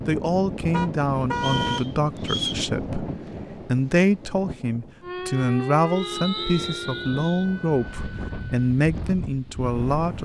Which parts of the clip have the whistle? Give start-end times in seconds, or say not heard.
1.4-2.6, 6.0-7.5.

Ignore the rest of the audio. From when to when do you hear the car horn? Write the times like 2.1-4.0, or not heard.
0.7-1.8, 5.9-7.2.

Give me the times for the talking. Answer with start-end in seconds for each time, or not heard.
0.1-3.0, 3.6-10.1.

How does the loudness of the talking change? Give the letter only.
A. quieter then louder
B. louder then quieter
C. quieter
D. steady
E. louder
D.